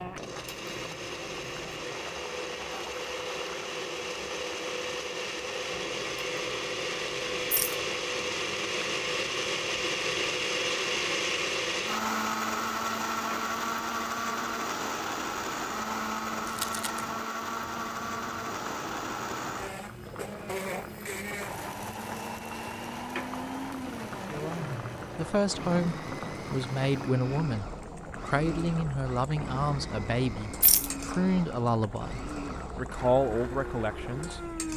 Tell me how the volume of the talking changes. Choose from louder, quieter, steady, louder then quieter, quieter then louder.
steady.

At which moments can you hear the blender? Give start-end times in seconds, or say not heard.
0.0-34.7.